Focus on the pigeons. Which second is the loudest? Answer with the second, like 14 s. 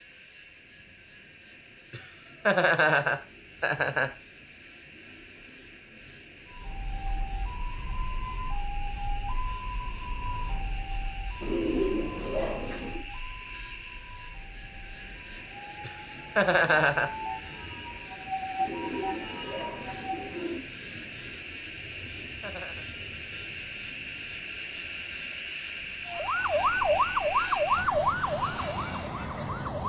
12 s.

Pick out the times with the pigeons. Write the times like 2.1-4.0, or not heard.
11.4-13.0, 18.6-20.6.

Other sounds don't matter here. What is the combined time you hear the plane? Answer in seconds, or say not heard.
30 s.